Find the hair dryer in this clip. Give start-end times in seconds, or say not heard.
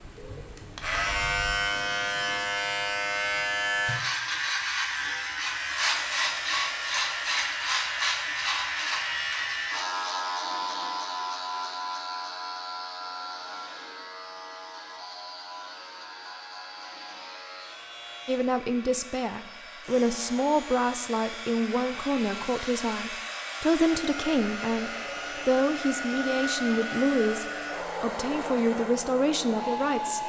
5.5-30.2.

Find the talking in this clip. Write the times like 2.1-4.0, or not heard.
18.2-30.2.